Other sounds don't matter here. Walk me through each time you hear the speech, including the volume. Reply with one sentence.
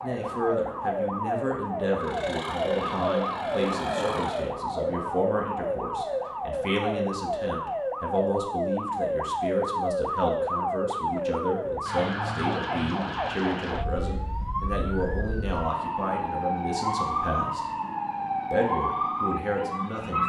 The speech can be heard from 0.0 to 17.6 s, at a steady volume; and briefly from 18.5 to 20.2 s.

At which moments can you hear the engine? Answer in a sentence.
You can hear the engine from 2.0 to 4.5 s.